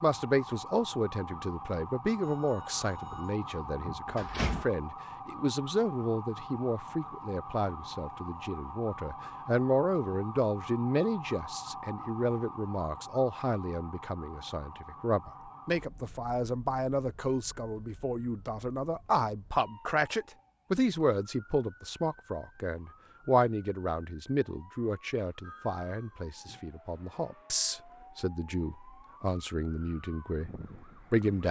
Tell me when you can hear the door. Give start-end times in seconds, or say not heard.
3.0-4.7.